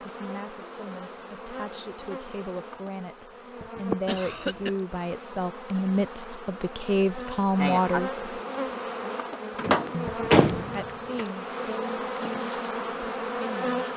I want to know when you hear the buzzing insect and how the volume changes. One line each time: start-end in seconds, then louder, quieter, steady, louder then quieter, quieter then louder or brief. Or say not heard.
0.0-13.9 louder.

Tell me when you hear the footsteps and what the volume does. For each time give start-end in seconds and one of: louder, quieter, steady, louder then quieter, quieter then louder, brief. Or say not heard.
not heard.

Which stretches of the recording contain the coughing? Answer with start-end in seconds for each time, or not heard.
4.0-4.8.